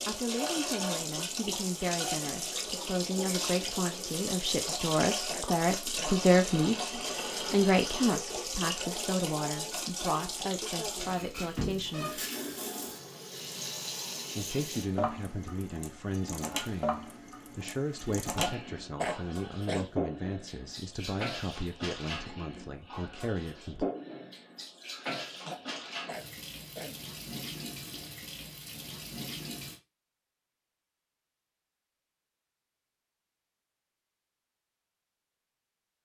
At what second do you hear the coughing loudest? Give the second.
19 s.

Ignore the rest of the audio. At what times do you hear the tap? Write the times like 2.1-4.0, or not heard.
0.0-29.8.